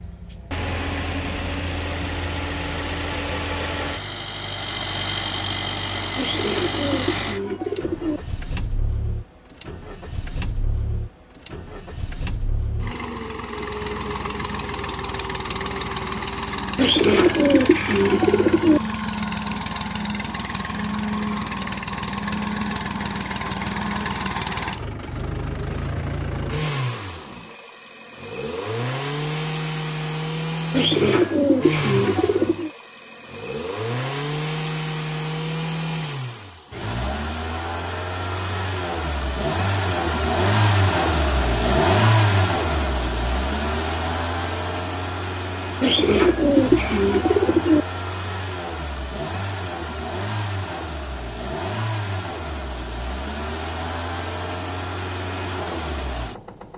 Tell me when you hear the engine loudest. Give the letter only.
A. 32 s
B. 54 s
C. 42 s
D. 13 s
C.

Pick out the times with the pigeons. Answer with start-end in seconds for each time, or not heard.
6.2-8.2, 16.8-18.8, 30.7-32.7, 45.8-47.9.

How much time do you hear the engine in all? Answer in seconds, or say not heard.
57 s.